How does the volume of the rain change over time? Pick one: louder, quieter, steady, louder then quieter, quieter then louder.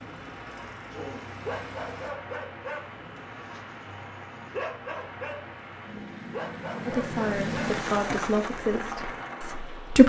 louder.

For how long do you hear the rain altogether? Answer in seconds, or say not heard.
10 s.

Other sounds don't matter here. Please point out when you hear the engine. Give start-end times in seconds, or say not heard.
0.0-2.1.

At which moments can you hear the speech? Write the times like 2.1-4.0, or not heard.
6.8-10.0.